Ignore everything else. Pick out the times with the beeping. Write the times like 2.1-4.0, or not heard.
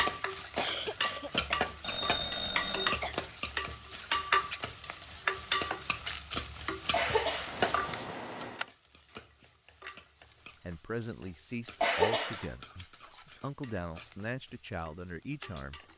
1.8-3.0, 7.5-8.7.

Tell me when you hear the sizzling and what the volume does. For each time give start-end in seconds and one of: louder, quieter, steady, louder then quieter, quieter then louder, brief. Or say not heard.
0.0-15.9 quieter.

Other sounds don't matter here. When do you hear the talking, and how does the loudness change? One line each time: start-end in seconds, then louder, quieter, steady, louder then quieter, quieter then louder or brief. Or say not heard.
10.6-15.8 steady.